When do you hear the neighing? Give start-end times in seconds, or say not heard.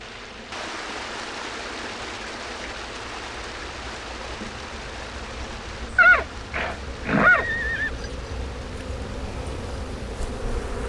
6.0-7.9.